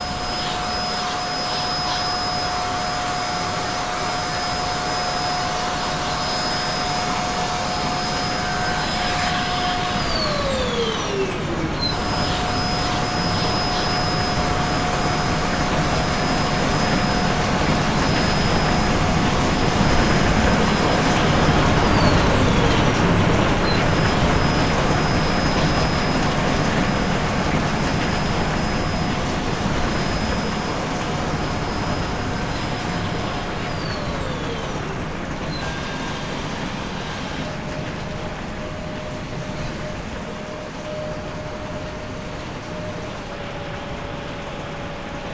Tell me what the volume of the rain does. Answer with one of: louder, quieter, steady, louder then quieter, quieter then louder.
louder then quieter.